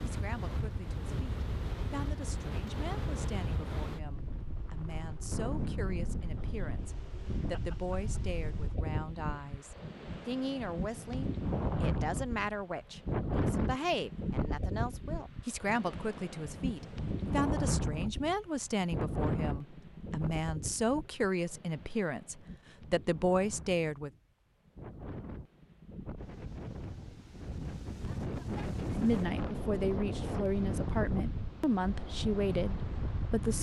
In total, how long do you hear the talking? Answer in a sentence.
You can hear the talking for 29 seconds altogether.